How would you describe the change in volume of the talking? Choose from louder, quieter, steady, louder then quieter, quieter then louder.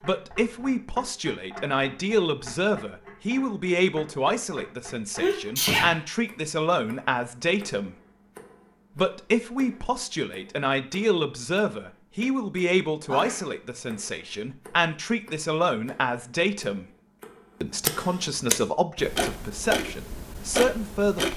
steady.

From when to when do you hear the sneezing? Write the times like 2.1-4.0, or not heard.
5.2-6.0, 13.1-13.5.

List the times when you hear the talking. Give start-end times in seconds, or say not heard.
0.0-8.0, 8.9-16.9, 17.6-21.3.